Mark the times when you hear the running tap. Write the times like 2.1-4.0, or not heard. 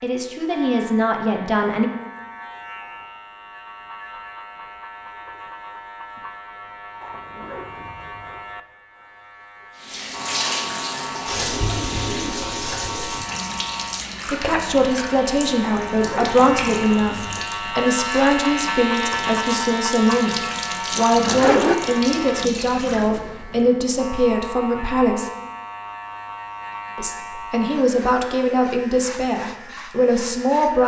9.8-23.6.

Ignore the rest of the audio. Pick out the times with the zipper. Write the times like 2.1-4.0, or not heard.
7.0-8.4, 15.6-17.4, 21.1-21.8.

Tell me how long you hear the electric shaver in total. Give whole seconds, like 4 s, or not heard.
31 s.